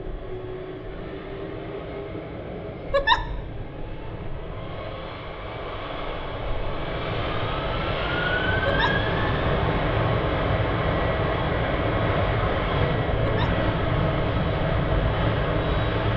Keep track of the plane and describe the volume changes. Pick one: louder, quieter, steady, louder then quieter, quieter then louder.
louder.